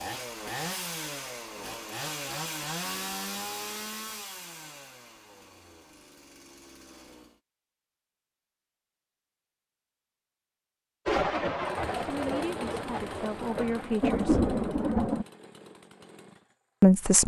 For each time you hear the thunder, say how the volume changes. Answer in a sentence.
You can hear the thunder from 11.1 to 15.2 s, getting quieter then louder.